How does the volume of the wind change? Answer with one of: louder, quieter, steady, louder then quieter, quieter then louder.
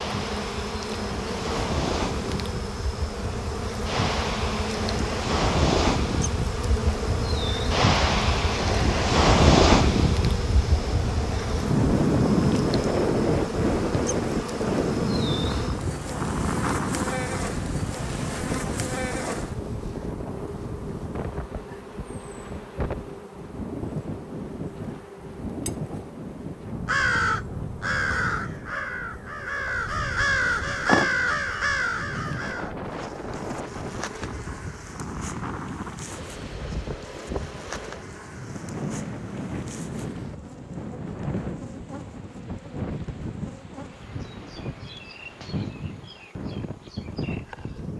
quieter.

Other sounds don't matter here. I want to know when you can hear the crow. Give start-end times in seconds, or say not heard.
26.9-32.7.